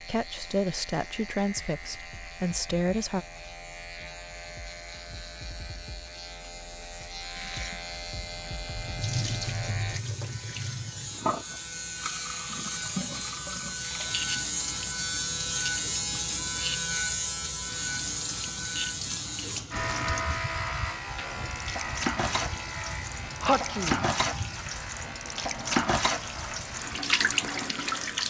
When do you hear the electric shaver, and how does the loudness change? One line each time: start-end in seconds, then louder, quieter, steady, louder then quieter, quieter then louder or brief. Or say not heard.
0.0-28.2 louder then quieter.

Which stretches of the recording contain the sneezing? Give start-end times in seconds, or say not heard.
23.4-24.1.